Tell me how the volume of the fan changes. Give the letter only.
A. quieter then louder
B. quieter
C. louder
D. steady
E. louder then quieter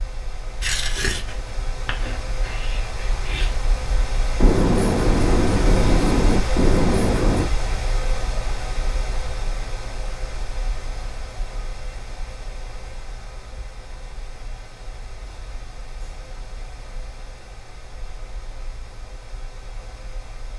E.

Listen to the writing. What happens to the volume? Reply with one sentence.
The loudness of the writing goes down, then up.